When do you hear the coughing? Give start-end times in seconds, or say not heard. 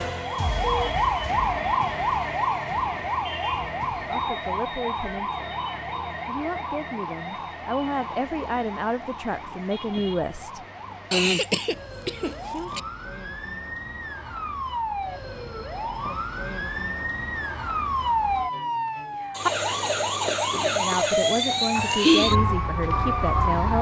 11.1-12.8.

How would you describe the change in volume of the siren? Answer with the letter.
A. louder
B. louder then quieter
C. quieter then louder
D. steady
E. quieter
C.